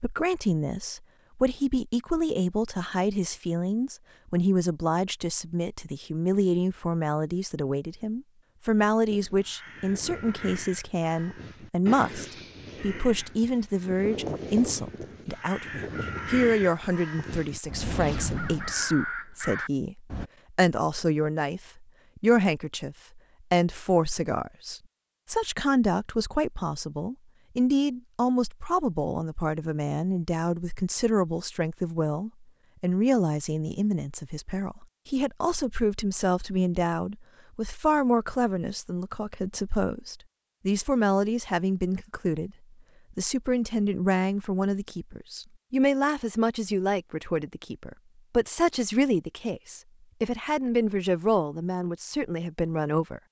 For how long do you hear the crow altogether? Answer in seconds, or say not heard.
11 s.